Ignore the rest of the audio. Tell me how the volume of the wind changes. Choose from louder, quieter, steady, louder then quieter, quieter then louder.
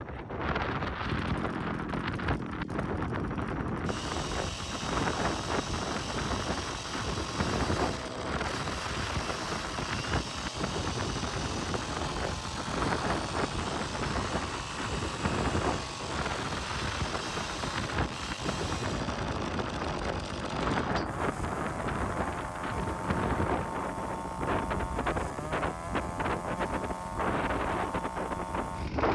steady.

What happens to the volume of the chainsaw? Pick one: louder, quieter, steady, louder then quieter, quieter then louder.
steady.